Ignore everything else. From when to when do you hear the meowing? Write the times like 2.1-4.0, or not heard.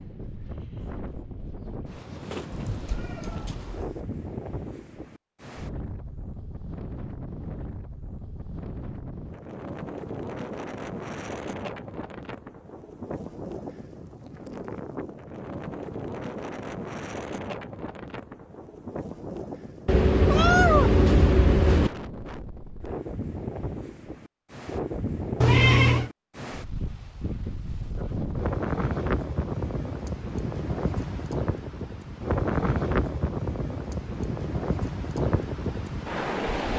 2.5-4.0, 19.9-21.9, 25.4-26.1.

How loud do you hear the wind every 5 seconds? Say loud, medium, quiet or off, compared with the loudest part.
medium, medium, medium, medium, medium, loud, loud, loud.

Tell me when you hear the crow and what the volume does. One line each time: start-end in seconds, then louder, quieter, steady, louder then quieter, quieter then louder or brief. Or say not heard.
not heard.